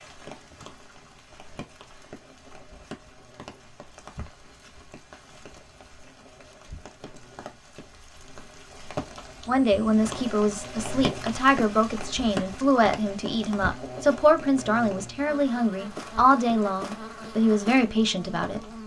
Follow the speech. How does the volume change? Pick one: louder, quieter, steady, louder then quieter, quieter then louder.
steady.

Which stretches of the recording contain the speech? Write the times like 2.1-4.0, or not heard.
9.4-18.6.